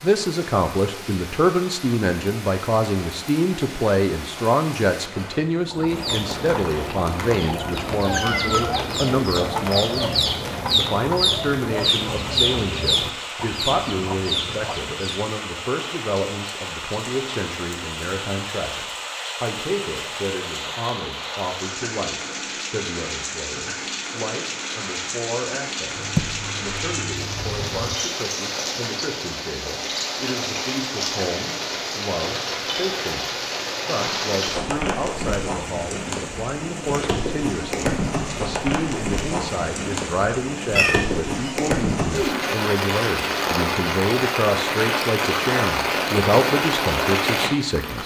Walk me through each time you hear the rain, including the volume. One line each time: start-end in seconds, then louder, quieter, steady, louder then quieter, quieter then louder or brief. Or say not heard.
0.0-48.0 louder.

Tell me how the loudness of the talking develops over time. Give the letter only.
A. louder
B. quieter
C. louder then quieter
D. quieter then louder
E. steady
D.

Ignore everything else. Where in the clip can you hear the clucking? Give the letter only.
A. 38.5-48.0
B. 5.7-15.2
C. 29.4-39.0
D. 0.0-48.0
B.